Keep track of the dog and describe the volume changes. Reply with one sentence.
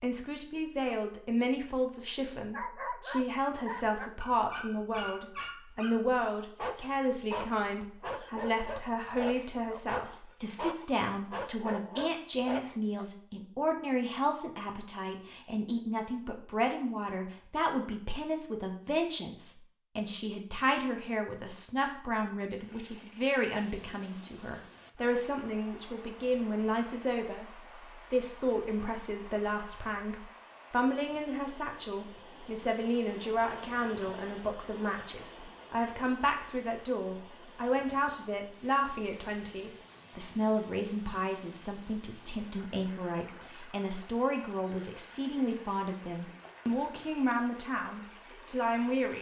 The loudness of the dog stays about the same.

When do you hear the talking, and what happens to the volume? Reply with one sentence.
The talking can be heard from 0.0 to 49.1 s, at a steady volume.